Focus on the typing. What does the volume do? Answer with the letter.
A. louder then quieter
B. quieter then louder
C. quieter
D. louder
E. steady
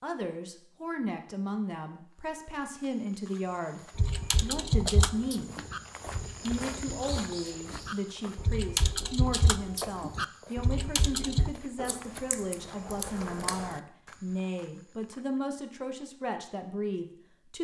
B.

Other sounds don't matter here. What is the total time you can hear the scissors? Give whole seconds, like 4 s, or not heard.
2 s.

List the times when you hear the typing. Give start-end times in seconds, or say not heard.
4.0-11.6.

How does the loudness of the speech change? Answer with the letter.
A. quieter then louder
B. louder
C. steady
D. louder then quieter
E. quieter
C.